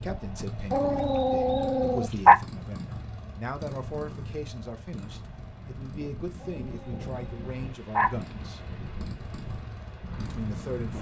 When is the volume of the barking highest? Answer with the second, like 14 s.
2 s.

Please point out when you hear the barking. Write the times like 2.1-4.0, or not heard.
0.7-2.4, 6.4-8.3.